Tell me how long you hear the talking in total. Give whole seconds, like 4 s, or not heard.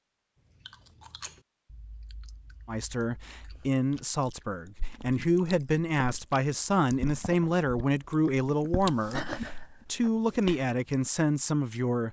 9 s.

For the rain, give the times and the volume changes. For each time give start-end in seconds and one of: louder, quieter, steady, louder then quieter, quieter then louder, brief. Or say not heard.
not heard.